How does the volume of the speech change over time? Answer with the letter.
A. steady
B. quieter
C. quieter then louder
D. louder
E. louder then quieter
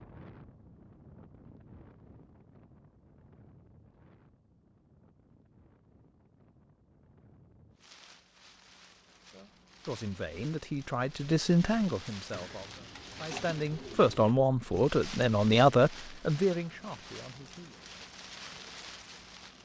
E.